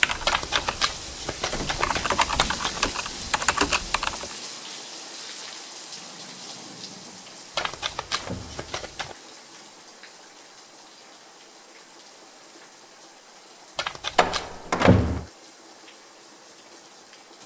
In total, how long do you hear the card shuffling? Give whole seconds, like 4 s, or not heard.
5 s.